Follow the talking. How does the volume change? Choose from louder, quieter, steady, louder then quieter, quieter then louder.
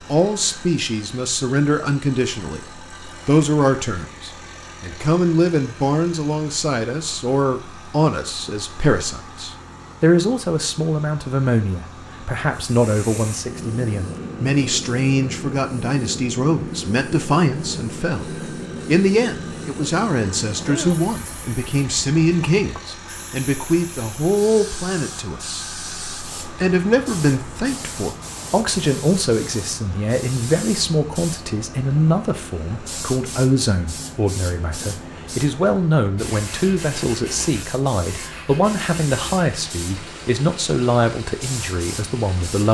steady.